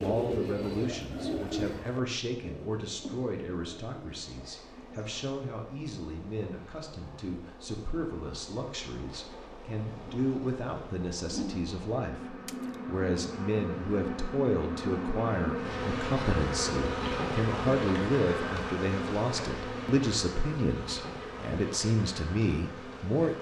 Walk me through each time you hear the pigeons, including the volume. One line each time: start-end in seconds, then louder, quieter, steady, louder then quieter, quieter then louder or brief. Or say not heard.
0.0-5.2 quieter.